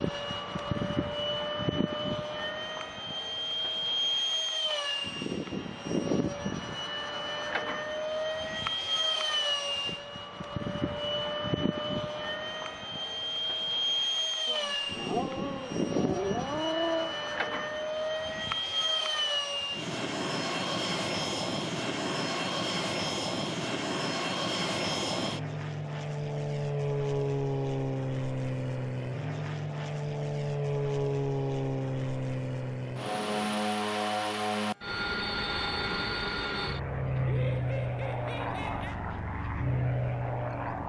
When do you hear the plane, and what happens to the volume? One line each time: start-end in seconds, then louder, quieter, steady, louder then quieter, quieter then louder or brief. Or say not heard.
0.0-40.8 steady.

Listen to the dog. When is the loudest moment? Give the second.
17 s.